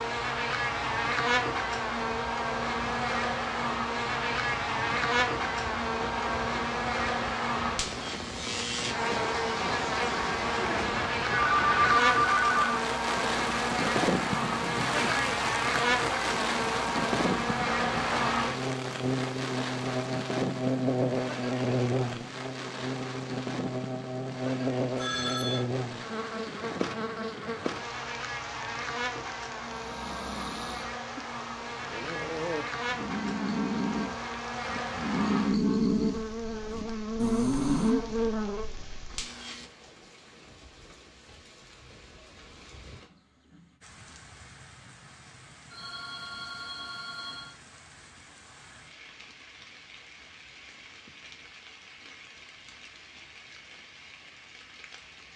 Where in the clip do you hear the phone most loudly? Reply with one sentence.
The volume of the phone peaks at 12 seconds.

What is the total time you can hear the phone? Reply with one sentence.
You can hear the phone for 4 seconds altogether.